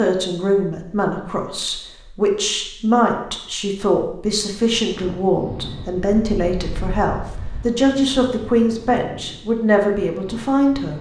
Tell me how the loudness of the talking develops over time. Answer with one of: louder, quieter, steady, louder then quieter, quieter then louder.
steady.